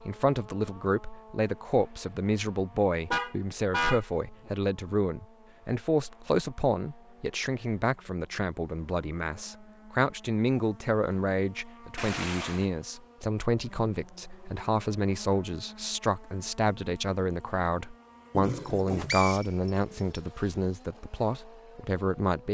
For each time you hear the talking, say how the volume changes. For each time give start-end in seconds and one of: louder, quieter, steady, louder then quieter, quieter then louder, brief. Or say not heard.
0.0-22.4 steady.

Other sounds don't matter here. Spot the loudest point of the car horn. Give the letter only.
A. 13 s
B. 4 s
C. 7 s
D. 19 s
B.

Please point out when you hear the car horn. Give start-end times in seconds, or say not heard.
3.1-4.5, 11.9-12.7, 18.3-19.2.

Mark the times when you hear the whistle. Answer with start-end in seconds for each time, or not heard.
18.6-20.2.